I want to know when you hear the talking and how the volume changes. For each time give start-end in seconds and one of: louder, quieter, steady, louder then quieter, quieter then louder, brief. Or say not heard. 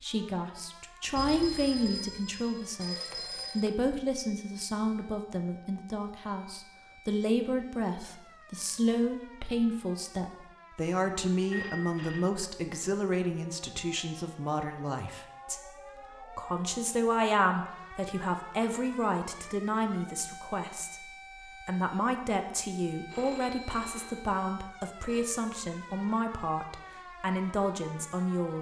0.0-28.5 steady.